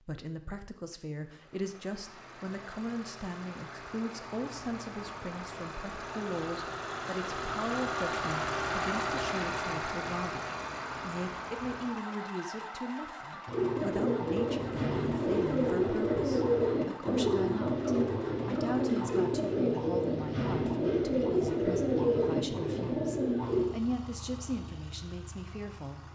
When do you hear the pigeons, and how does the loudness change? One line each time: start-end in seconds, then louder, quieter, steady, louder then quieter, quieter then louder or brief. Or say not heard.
13.4-23.6 steady.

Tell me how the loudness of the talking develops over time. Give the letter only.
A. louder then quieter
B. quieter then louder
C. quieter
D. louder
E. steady
E.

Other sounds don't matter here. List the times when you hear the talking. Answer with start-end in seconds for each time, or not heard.
0.0-26.0.